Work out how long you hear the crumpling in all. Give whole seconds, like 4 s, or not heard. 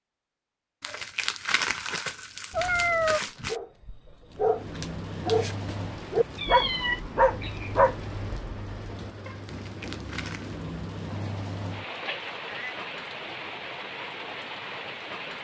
4 s.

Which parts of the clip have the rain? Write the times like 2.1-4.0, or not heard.
4.2-15.3.